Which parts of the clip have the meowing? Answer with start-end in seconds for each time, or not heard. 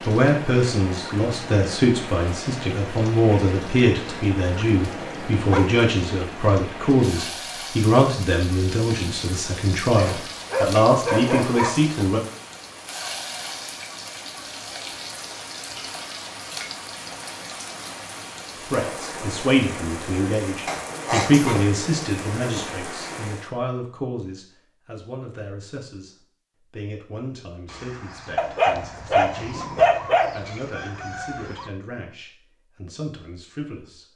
not heard.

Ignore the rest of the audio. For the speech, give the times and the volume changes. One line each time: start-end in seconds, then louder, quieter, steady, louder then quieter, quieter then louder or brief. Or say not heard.
0.0-12.2 steady
18.6-34.0 quieter.